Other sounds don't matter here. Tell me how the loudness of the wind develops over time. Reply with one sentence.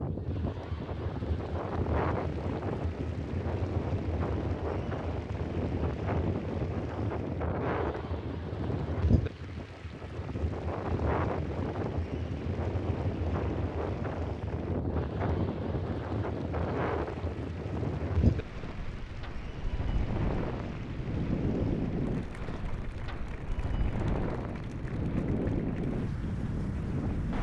The volume of the wind stays about the same.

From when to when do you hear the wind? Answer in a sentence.
You can hear the wind from 0.0 to 27.3 s.